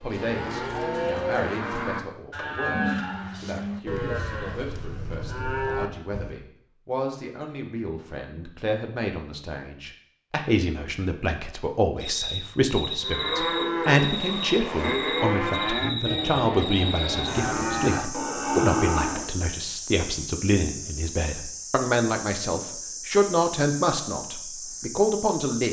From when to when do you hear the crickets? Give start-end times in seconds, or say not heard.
12.2-25.6.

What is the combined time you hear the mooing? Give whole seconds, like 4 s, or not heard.
13 s.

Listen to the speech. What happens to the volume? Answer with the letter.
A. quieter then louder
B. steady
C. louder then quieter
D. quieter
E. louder
E.